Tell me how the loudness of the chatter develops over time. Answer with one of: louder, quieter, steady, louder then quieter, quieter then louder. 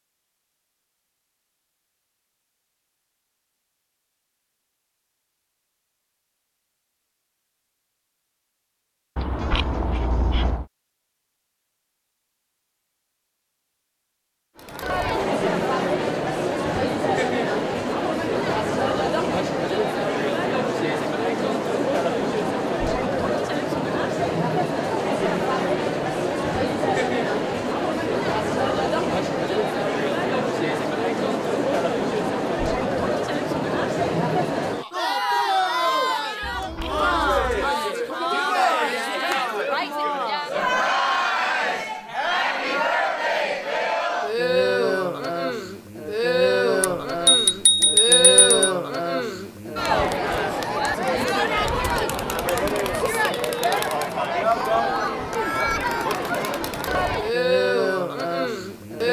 steady.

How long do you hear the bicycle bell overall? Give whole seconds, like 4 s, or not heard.
5 s.